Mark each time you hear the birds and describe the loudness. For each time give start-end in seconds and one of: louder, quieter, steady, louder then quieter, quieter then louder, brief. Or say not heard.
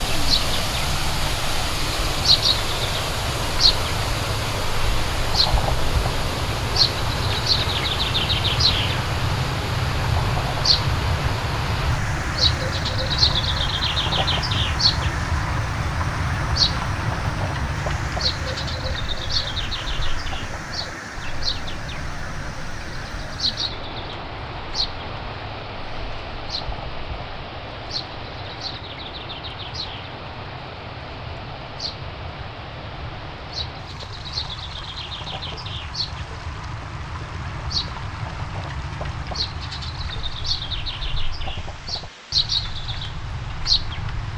0.0-44.3 quieter then louder.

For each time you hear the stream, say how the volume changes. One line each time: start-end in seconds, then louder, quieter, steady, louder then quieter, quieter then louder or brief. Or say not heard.
0.0-44.3 quieter.